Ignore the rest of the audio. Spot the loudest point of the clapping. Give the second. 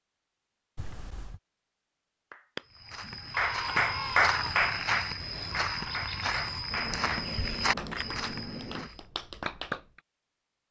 4 s.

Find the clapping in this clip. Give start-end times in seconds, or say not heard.
2.3-10.0.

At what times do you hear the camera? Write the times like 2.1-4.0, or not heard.
0.8-1.4, 6.7-8.9.